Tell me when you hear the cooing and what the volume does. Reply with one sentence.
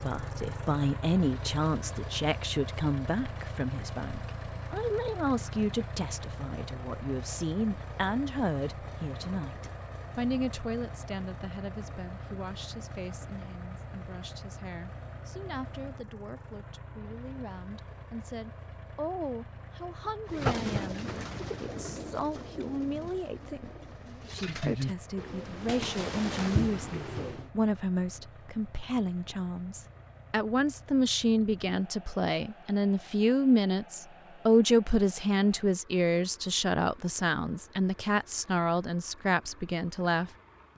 The cooing can be heard from 20.2 to 27.4 s, getting quieter then louder.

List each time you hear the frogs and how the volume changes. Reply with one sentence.
The frogs can't be heard in this clip.